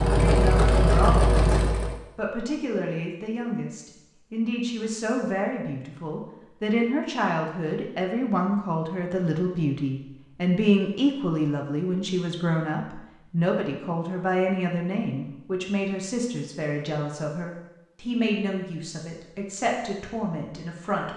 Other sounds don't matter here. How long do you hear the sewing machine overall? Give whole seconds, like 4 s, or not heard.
2 s.